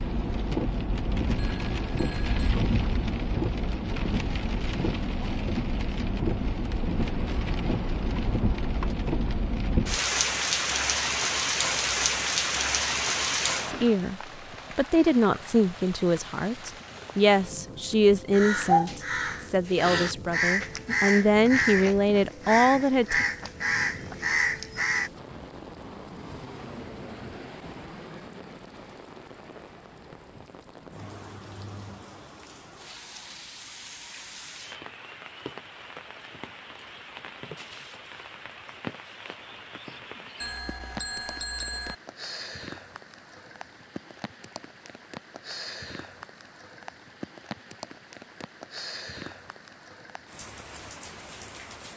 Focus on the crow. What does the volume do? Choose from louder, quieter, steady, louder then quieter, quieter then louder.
steady.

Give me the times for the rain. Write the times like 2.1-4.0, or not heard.
0.0-51.9.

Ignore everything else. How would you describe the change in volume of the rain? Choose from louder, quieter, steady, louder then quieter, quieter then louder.
quieter.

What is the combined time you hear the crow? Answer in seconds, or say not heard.
7 s.